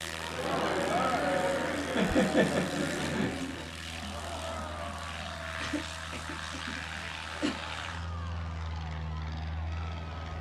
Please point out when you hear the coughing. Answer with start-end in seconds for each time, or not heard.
1.9-3.6, 5.6-7.6.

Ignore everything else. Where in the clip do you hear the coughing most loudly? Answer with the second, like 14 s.
2 s.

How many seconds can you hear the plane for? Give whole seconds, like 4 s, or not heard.
10 s.